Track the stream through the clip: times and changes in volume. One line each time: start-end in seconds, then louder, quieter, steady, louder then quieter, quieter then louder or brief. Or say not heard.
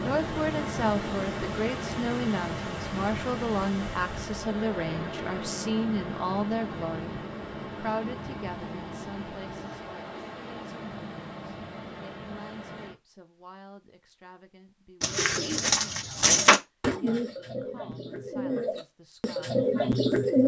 0.0-12.9 quieter.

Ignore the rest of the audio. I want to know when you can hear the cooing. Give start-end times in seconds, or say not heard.
15.0-20.4.